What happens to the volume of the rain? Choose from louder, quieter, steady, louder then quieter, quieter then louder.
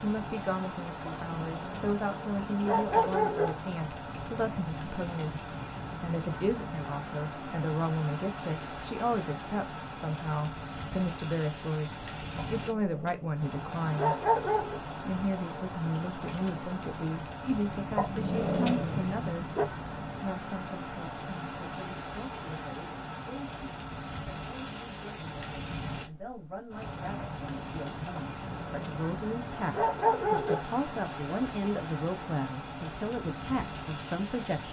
steady.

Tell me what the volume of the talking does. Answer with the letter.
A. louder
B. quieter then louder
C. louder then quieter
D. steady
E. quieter
B.